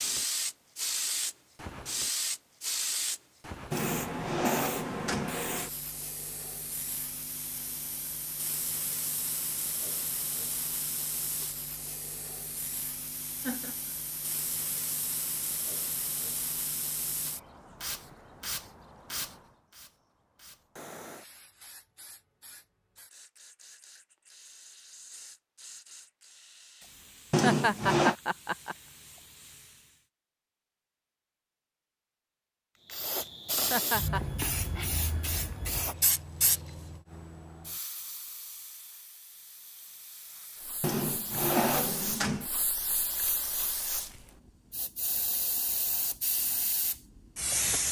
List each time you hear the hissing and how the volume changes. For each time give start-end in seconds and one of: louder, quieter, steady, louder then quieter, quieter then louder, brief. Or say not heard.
0.0-30.1 quieter
32.9-47.8 quieter then louder.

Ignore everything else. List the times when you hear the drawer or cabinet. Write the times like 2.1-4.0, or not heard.
3.7-5.3, 27.3-28.1, 40.8-42.5.